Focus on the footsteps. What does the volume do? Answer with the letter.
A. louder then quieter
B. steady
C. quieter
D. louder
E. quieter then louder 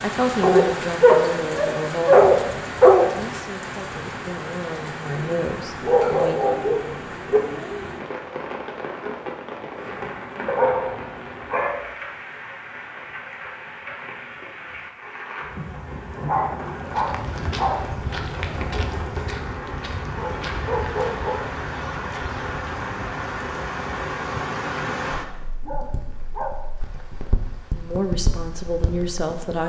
C.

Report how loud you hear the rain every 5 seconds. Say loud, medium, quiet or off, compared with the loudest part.
loud, loud, medium, loud, loud, medium.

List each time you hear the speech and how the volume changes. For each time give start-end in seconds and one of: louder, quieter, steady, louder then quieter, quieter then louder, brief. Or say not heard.
0.0-6.5 quieter then louder
27.8-29.6 brief.